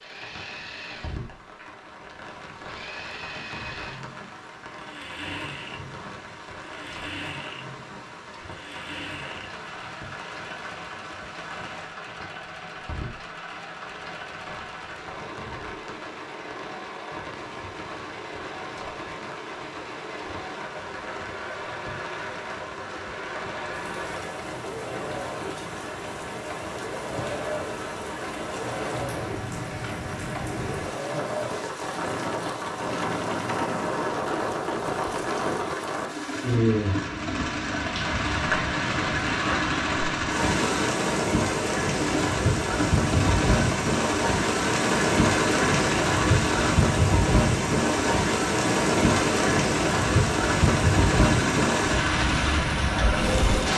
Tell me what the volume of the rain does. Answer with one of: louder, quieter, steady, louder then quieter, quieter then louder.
louder.